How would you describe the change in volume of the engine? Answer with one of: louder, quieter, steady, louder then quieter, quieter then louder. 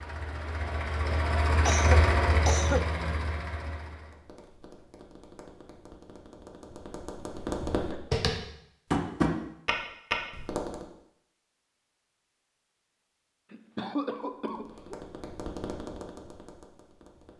louder then quieter.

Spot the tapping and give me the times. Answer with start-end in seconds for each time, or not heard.
3.9-10.8, 14.3-17.3.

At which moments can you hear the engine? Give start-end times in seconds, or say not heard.
0.0-4.2.